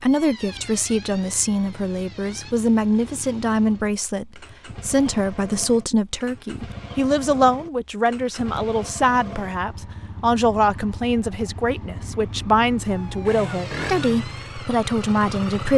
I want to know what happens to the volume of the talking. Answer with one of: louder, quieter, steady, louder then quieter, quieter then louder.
steady.